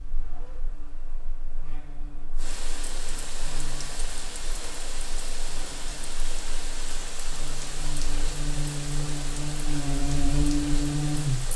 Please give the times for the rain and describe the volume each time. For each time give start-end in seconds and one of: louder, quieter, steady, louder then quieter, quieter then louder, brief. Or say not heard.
0.0-11.5 louder.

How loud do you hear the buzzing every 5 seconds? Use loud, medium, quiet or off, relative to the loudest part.
quiet, medium, loud.